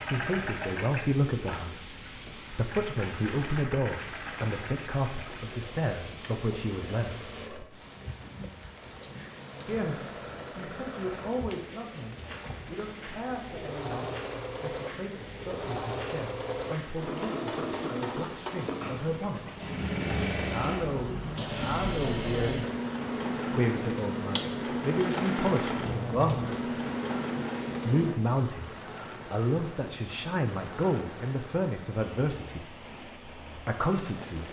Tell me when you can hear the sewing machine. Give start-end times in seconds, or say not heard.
0.0-28.1.